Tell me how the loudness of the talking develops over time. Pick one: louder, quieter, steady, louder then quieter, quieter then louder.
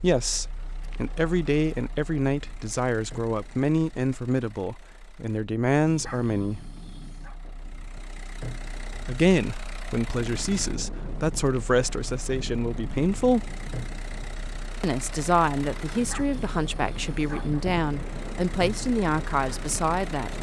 steady.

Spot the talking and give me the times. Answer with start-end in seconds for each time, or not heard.
0.0-6.7, 9.1-13.5, 14.8-20.3.